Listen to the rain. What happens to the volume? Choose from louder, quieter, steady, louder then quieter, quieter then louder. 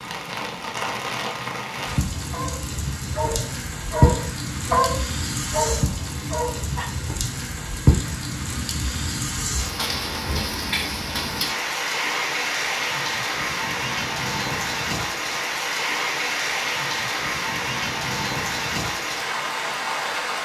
steady.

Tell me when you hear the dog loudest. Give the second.
5 s.